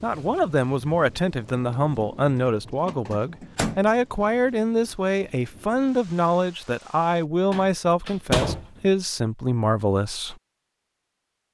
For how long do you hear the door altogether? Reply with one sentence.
You can hear the door for 2 seconds altogether.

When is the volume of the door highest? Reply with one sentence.
The loudest moment of the door is at 8 seconds.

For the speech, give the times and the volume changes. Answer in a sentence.
You can hear the speech from 0.0 to 10.3 s, at a steady volume.